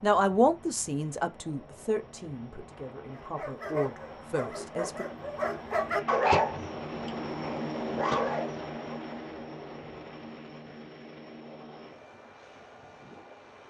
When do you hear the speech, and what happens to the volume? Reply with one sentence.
The speech can be heard from 0.0 to 5.0 s, getting quieter then louder.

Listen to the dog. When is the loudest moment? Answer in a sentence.
The volume of the dog peaks at 6 seconds.